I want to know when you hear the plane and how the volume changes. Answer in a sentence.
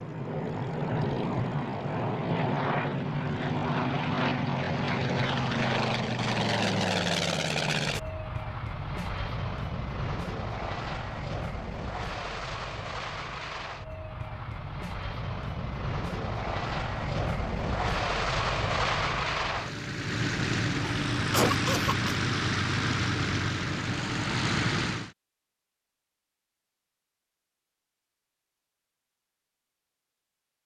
The plane can be heard from 0.0 to 25.1 s, getting quieter then louder.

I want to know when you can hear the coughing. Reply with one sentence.
The coughing can be heard from 20.8 to 22.1 s.